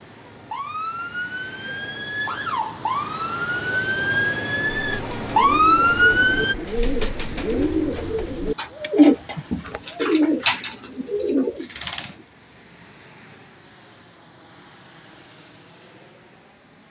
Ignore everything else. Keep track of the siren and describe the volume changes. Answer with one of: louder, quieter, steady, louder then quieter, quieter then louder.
louder.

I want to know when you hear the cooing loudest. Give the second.
9 s.